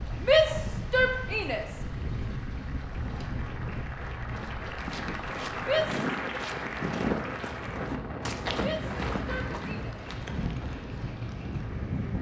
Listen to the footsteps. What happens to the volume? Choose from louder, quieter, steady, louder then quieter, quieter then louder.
louder then quieter.